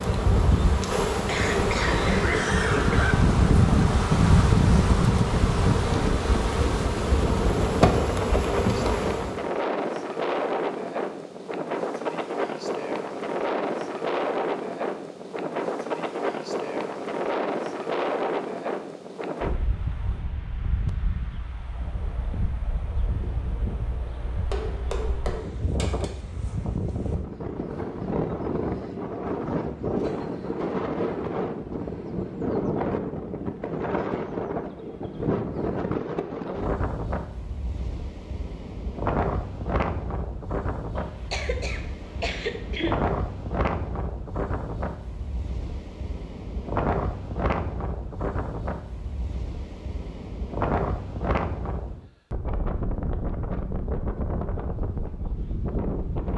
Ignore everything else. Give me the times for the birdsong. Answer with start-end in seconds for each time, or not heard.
not heard.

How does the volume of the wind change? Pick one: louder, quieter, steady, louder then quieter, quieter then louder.
quieter.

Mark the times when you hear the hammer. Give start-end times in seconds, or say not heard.
24.5-26.1.